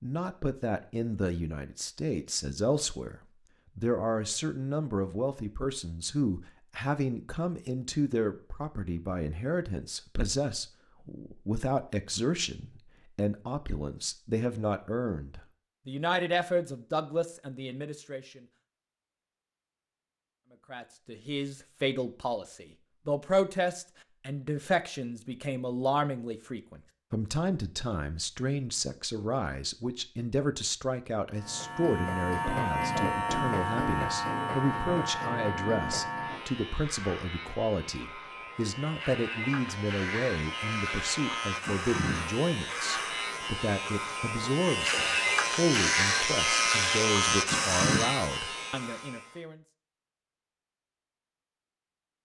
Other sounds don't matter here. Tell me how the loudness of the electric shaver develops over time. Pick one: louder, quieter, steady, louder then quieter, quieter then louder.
quieter then louder.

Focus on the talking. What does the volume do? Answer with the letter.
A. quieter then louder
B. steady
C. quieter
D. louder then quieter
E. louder
B.